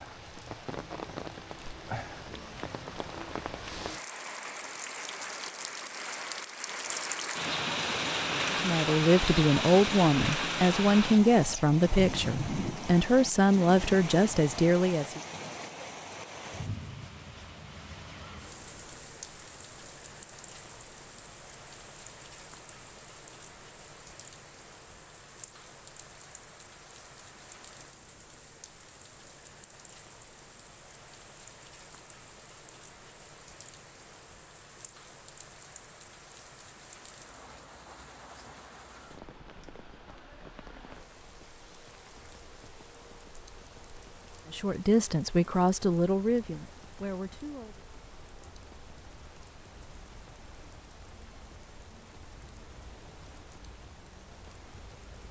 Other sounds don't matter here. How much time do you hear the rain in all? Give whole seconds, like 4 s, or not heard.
55 s.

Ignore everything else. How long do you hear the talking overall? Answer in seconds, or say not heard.
10 s.